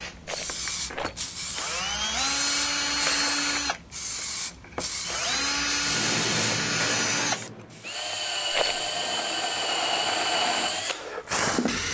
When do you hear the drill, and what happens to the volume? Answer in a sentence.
The drill can be heard from 0.0 to 11.8 s, at a steady volume.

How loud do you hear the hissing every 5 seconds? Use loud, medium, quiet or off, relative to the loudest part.
loud, loud, off.